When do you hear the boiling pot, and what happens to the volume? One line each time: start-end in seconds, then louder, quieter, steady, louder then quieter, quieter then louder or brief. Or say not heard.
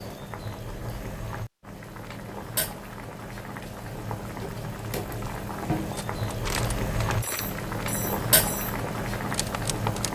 0.0-10.0 louder.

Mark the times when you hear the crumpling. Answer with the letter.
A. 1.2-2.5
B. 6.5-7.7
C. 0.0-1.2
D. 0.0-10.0
B.